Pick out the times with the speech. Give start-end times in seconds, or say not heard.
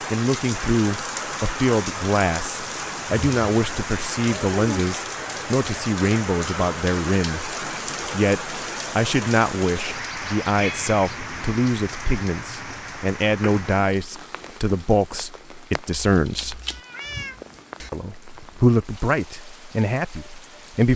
0.1-16.6, 17.9-20.9.